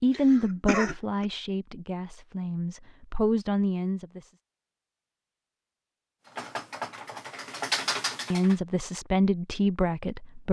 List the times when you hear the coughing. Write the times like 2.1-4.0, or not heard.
0.1-1.2.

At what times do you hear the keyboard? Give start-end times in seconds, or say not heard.
6.2-8.6.